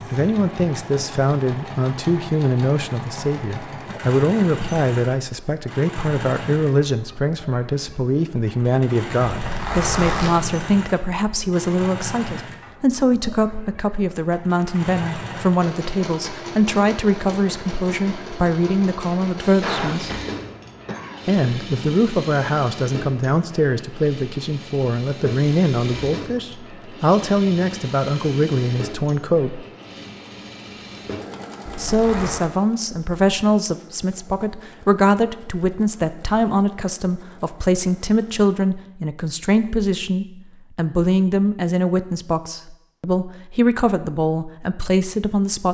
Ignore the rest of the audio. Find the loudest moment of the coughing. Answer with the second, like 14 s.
20 s.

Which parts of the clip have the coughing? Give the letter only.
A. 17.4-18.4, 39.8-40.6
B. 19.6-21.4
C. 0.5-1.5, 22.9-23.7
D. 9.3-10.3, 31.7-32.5
B.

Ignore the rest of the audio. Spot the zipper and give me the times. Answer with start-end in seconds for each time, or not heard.
9.3-10.3, 31.7-32.5.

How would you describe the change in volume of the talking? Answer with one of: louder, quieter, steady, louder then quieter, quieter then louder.
steady.